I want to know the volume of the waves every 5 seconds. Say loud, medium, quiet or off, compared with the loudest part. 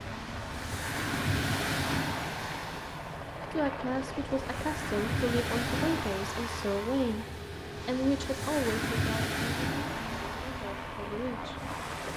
loud, loud, medium.